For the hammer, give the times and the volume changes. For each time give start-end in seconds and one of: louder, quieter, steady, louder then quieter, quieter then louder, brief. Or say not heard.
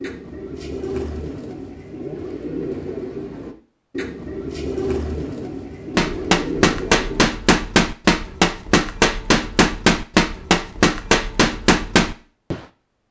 6.0-12.6 steady.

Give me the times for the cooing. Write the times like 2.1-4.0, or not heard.
0.0-7.2.